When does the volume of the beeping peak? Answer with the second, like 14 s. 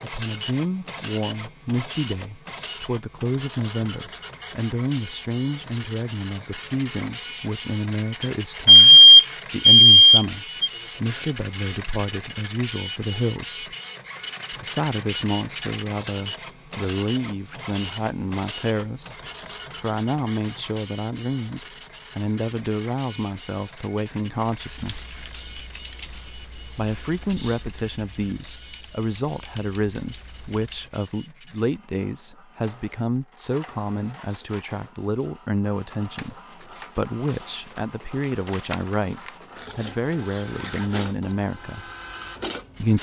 9 s.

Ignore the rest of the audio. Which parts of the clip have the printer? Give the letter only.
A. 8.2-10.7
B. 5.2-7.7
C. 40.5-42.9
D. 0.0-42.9
D.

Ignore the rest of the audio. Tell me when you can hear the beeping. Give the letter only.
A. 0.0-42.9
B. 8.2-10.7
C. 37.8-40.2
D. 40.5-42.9
B.